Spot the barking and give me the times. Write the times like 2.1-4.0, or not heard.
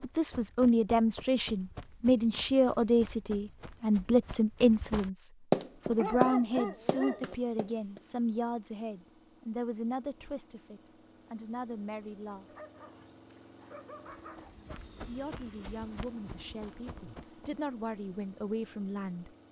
6.0-7.3, 12.4-14.8.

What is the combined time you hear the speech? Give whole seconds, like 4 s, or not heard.
17 s.